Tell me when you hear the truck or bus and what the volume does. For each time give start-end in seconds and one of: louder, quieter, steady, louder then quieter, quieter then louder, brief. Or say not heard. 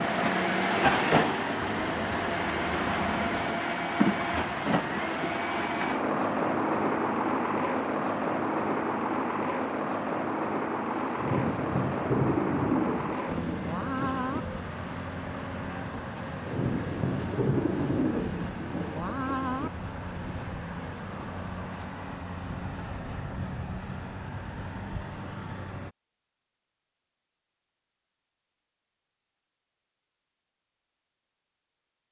0.0-25.9 quieter.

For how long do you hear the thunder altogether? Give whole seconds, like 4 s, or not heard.
7 s.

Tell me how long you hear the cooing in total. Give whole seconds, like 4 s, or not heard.
2 s.